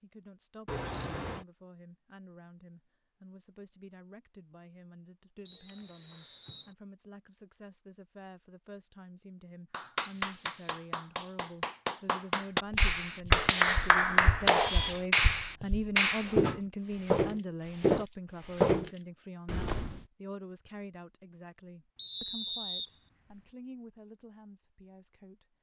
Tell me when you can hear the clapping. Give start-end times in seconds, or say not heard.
9.7-16.3.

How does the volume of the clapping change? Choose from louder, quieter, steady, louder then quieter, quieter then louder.
louder.